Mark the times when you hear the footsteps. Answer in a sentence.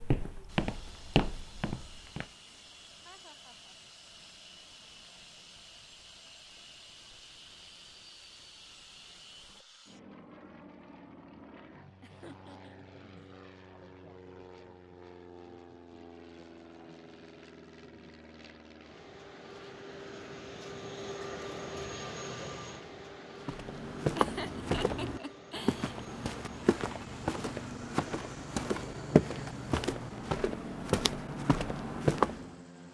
You can hear the footsteps from 0.0 to 2.2 s and from 23.4 to 32.5 s.